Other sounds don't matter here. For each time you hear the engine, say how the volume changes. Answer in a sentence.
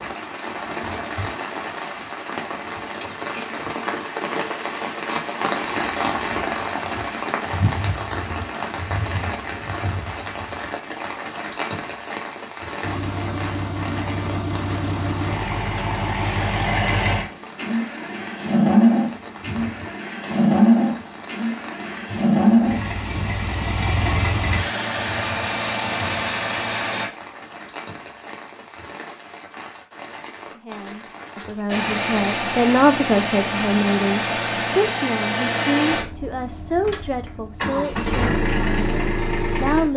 You can hear the engine from 12.8 to 27.1 s, getting louder then quieter; and from 31.6 to 39.9 s, getting quieter then louder.